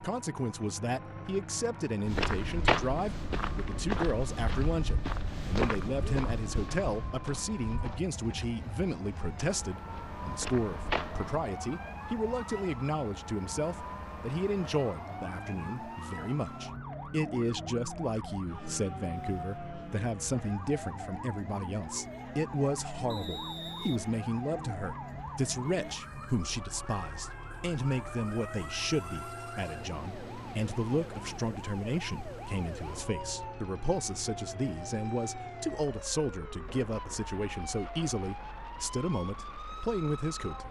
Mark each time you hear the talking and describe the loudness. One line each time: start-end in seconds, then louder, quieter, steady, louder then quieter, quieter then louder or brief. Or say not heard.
0.0-40.6 steady.